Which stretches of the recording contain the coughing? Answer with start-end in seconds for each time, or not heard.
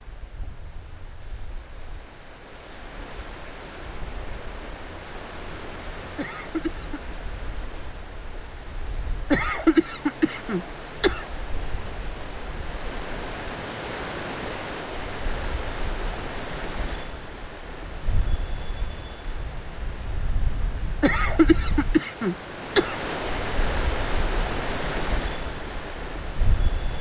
6.2-7.2, 9.3-11.2, 21.0-23.0.